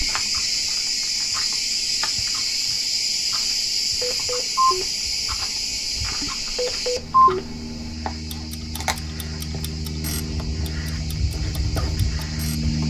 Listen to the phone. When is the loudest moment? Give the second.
7 s.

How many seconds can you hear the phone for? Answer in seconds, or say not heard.
2 s.